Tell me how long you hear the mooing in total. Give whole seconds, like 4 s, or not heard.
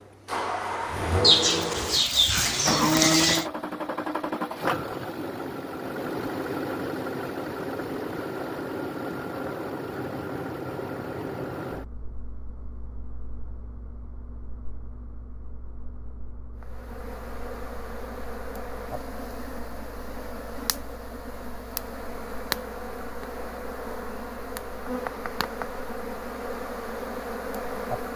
2 s.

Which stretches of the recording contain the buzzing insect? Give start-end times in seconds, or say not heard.
16.6-28.1.